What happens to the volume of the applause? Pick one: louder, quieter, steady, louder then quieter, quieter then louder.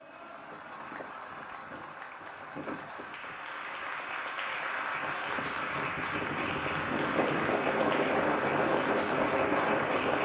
louder.